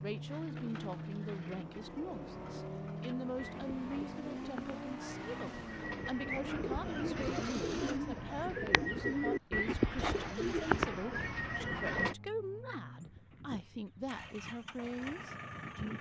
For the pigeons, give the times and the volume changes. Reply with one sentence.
The pigeons can be heard from 0.2 to 12.2 s, getting louder.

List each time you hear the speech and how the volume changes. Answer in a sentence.
The speech can be heard from 0.0 to 15.9 s, at a steady volume.